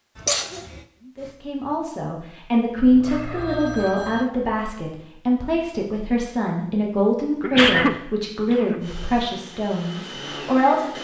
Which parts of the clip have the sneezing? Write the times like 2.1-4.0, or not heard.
0.1-0.8, 7.4-8.8.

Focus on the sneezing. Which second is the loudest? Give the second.
8 s.